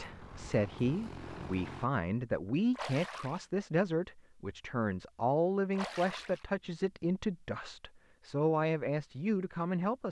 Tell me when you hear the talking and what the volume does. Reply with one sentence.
You can hear the talking from 0.0 to 10.0 s, at a steady volume.